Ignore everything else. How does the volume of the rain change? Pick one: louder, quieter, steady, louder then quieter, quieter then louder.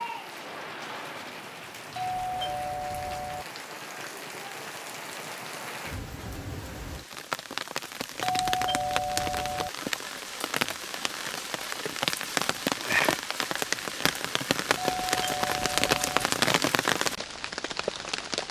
louder.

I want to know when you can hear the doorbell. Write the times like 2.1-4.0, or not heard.
1.9-3.5, 8.2-9.7, 14.8-16.2.